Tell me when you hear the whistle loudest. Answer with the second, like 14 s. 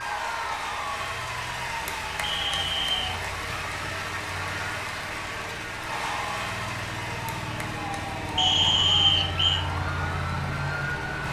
9 s.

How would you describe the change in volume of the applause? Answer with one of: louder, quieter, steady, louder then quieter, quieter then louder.
quieter.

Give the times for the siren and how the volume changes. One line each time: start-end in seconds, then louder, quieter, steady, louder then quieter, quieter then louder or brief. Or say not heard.
0.0-11.2 louder.